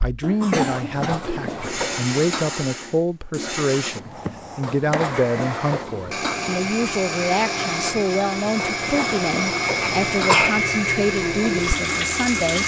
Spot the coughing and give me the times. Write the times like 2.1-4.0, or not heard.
0.2-1.2, 9.8-10.7.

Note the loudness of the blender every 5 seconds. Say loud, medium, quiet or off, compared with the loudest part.
medium, loud, loud.